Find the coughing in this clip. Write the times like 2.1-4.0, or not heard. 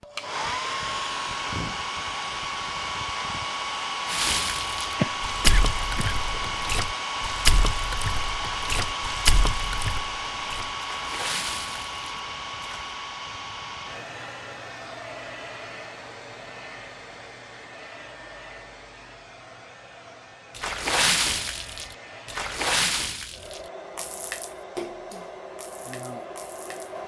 5.0-6.7.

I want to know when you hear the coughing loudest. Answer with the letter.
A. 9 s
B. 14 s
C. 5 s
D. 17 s
C.